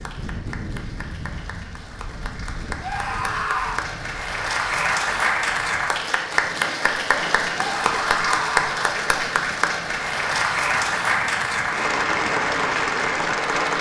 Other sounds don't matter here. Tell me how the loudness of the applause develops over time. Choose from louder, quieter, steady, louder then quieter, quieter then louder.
louder.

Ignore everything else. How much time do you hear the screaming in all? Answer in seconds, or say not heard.
2 s.